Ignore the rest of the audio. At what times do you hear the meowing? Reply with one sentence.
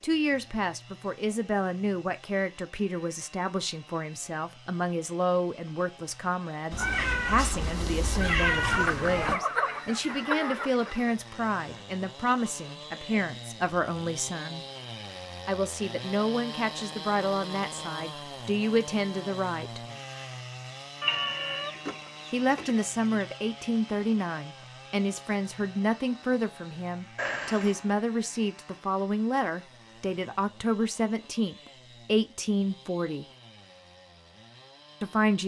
The meowing can be heard from 6.7 to 9.4 s, from 21.0 to 21.8 s and from 27.1 to 27.8 s.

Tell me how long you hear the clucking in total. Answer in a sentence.
You can hear the clucking for 4 seconds altogether.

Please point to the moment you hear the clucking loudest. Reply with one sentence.
The volume of the clucking peaks at 9 seconds.